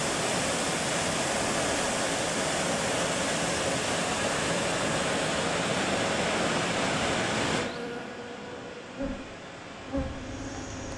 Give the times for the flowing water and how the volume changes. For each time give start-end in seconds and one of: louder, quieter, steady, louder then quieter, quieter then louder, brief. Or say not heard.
0.0-10.9 quieter.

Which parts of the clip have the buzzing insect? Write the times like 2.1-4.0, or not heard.
7.5-10.9.